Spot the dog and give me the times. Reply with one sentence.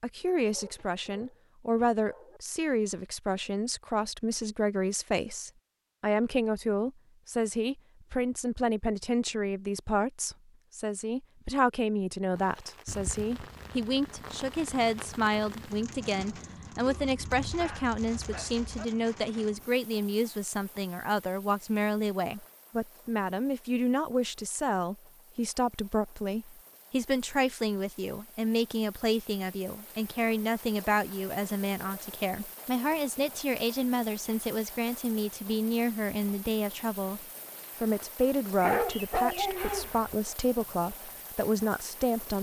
You can hear the dog from 0.4 to 2.4 s, from 16.9 to 18.9 s and from 38.6 to 40.1 s.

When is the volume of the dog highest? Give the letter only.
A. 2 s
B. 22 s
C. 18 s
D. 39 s
D.